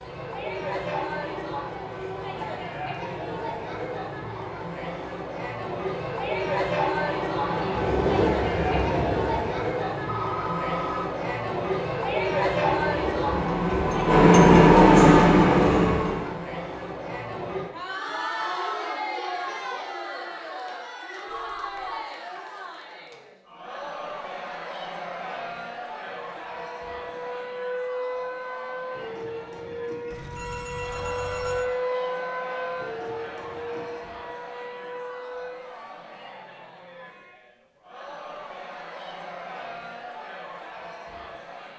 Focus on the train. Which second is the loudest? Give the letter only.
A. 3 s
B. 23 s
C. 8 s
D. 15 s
D.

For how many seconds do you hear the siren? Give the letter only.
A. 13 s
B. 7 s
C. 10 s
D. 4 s
C.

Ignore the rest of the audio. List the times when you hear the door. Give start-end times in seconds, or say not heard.
not heard.